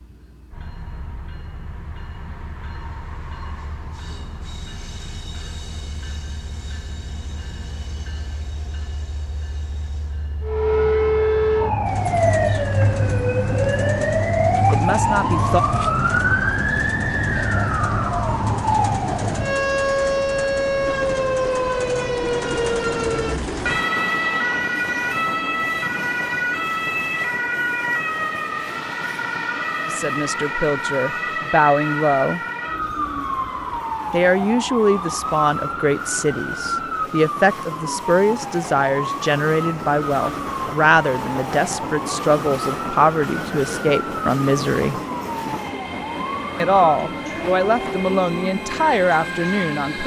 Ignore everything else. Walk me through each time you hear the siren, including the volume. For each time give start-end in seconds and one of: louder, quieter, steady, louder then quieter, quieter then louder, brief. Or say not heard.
10.4-50.0 quieter.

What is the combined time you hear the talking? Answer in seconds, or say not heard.
18 s.